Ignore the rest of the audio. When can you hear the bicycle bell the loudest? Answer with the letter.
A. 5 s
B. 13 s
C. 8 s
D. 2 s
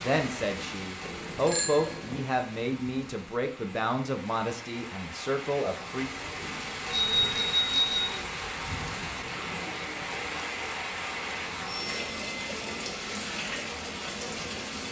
C.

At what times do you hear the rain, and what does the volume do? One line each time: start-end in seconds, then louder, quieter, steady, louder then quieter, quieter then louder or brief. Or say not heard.
0.0-14.8 louder.